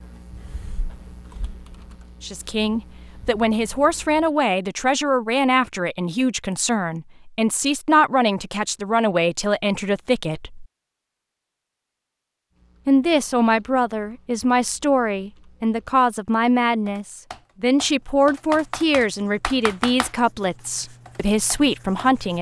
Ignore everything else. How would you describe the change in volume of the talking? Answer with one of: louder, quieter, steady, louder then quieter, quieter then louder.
steady.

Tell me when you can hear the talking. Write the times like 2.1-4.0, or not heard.
2.2-10.7, 12.8-22.3.